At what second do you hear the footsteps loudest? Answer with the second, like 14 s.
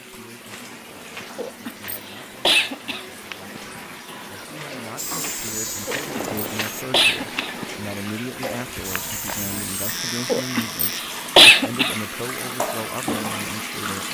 6 s.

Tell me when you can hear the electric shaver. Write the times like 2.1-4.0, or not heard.
5.0-6.8, 8.8-11.0.